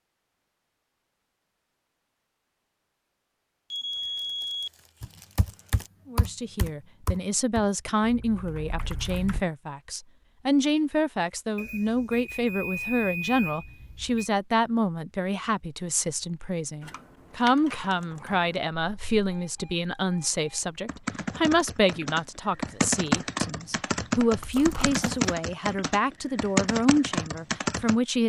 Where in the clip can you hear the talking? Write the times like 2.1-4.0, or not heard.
6.0-28.2.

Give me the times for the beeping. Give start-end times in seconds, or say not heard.
3.7-4.7, 11.6-14.3, 19.3-20.8.